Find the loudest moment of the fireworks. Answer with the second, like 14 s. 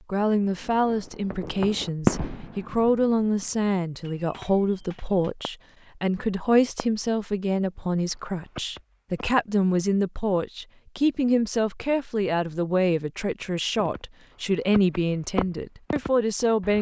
2 s.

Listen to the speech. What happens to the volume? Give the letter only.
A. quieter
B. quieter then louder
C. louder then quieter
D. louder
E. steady
E.